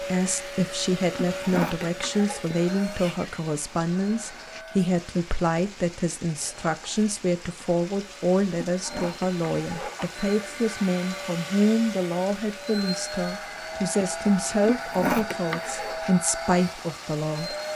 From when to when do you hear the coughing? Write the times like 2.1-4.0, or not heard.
1.1-2.4, 8.8-10.1, 14.6-15.9.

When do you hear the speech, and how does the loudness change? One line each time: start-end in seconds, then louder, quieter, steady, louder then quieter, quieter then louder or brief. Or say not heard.
0.0-17.6 steady.